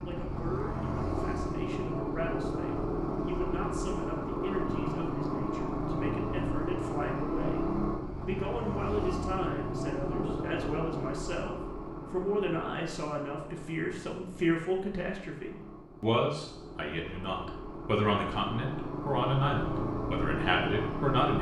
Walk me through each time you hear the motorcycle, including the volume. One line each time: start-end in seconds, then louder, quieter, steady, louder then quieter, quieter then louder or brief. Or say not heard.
0.0-21.3 quieter then louder.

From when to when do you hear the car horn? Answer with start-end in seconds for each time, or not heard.
not heard.